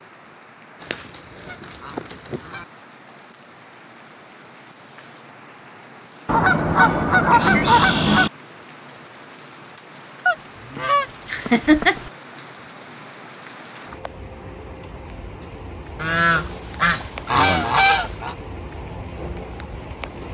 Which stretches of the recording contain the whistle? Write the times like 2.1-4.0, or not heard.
not heard.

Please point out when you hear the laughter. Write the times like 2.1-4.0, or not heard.
11.2-11.9.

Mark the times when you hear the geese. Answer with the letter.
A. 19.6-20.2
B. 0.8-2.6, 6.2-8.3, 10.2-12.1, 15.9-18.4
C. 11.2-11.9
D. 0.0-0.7
B.